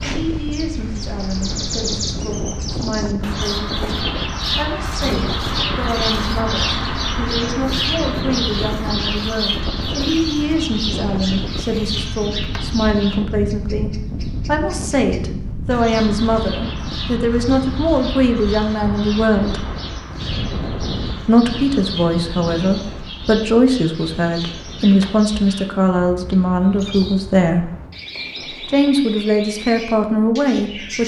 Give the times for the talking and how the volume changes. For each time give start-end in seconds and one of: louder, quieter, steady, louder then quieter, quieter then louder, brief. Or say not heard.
0.0-19.6 louder
21.2-27.7 steady
28.6-31.0 brief.